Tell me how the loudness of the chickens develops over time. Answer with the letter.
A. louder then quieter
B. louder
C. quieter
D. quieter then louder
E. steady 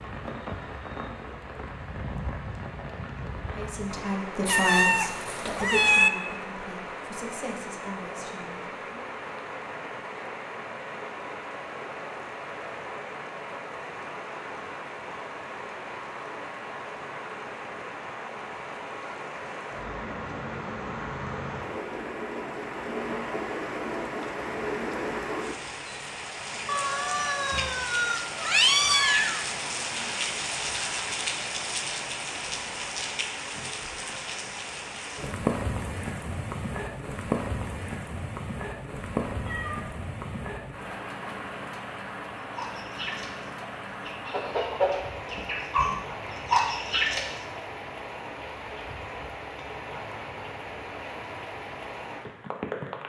B.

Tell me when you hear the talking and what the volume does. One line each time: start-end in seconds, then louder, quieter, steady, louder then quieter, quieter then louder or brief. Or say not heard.
3.4-9.1 quieter.